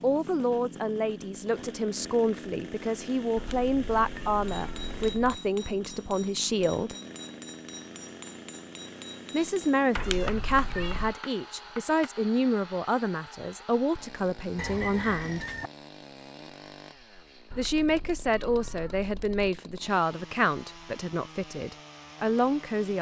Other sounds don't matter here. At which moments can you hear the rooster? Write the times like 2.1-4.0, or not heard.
14.6-15.7.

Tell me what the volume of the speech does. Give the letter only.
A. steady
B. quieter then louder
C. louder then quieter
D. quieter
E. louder
A.